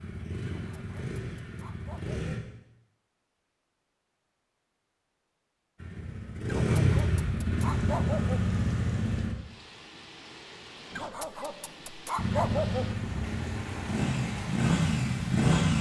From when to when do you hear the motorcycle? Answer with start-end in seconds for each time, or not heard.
0.0-2.4, 5.8-9.3, 12.2-15.7.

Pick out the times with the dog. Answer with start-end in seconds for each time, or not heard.
0.5-2.2, 6.5-8.5, 10.9-12.9.